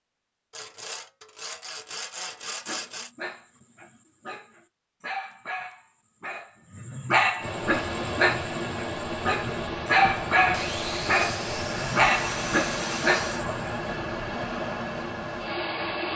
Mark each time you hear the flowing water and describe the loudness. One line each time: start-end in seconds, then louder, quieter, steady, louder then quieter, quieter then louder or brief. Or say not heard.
7.3-16.1 steady.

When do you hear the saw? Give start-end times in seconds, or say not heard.
0.5-3.1, 10.5-13.4.